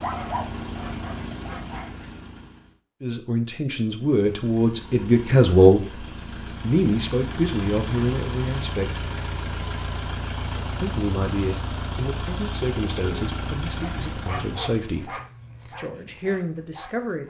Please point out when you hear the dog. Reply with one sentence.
You can hear the dog from 0.0 to 2.0 s and from 13.8 to 17.2 s.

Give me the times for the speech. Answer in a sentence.
The speech can be heard from 3.0 to 9.1 s and from 10.8 to 17.2 s.